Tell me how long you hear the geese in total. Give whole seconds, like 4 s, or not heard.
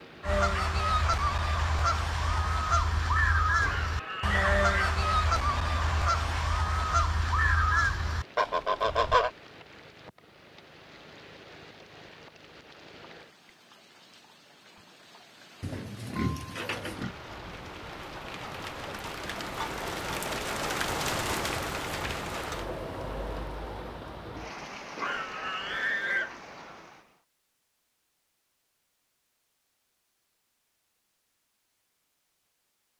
9 s.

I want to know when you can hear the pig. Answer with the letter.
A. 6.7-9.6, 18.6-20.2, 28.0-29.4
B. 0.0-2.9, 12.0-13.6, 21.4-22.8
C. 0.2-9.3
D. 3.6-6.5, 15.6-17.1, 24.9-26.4
D.